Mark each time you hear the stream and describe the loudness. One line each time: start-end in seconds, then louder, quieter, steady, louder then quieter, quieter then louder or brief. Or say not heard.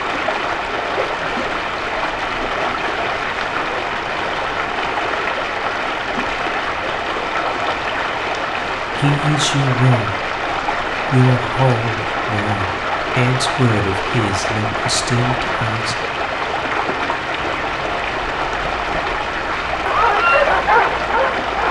0.0-21.6 steady.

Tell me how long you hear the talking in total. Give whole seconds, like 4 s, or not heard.
6 s.